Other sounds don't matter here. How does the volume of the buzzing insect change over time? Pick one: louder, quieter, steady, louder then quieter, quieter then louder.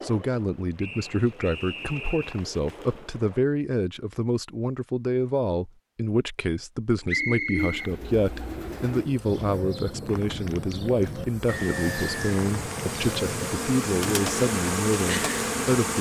louder.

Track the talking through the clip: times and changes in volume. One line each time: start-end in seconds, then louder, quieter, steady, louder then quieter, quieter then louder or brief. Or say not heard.
0.0-15.9 steady.